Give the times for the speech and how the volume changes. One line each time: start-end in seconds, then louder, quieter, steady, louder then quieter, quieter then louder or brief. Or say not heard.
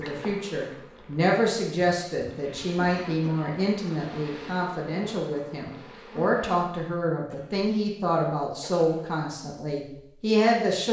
0.0-10.8 steady.